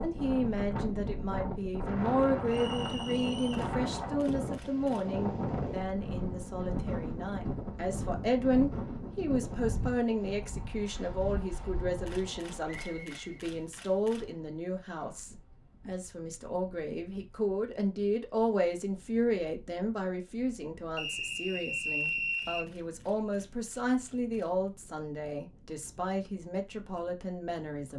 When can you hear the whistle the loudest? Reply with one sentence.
The loudest moment of the whistle is at 22 seconds.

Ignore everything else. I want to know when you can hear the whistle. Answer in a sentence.
The whistle can be heard from 2.5 to 3.7 s, from 12.7 to 13.2 s and from 20.9 to 22.6 s.